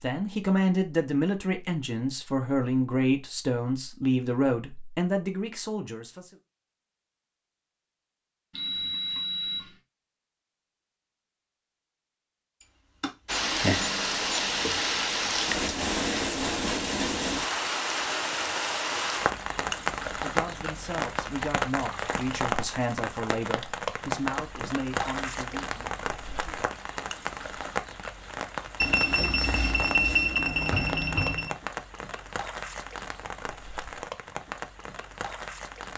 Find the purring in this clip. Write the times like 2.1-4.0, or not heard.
not heard.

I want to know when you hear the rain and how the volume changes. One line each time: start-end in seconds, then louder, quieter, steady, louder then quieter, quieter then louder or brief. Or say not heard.
13.2-35.9 quieter.